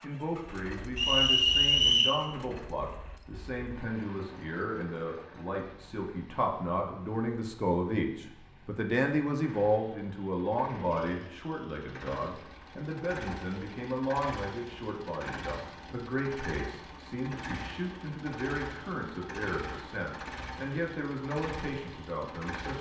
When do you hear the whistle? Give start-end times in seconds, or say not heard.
0.9-2.1.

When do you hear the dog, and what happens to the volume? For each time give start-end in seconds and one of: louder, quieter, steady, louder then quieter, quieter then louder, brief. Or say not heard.
not heard.